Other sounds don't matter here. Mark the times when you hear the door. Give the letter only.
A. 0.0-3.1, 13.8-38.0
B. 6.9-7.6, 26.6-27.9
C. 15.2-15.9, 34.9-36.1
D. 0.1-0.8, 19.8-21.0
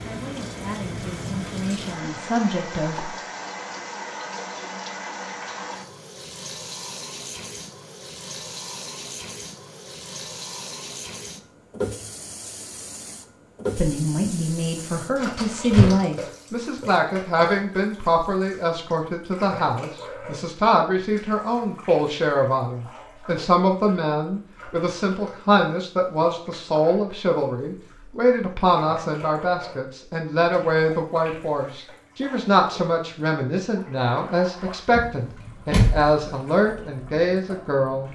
C.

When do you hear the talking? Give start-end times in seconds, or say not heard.
0.0-3.1, 13.8-38.0.